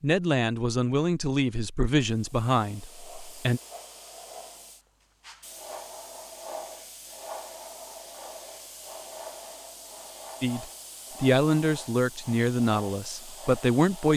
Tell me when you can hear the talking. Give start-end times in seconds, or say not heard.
0.0-3.6, 10.4-14.1.